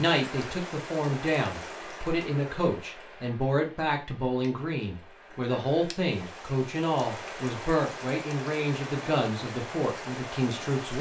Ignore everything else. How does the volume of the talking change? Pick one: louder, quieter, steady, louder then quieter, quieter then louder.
steady.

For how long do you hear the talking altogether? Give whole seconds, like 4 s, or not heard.
11 s.